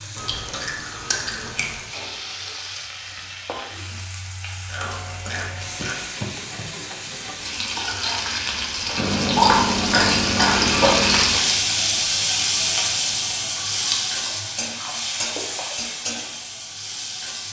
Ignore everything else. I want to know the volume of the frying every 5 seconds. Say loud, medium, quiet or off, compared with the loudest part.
quiet, medium, loud, medium.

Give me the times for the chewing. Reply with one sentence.
You can hear the chewing from 0.1 to 1.8 s, from 4.7 to 6.0 s, from 8.9 to 11.3 s and from 13.6 to 15.8 s.